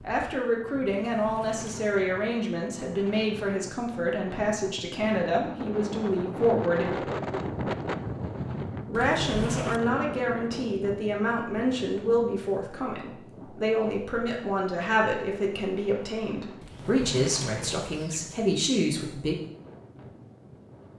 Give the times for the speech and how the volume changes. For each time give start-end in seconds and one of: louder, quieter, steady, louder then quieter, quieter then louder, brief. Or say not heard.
0.0-7.0 steady
8.8-19.4 steady.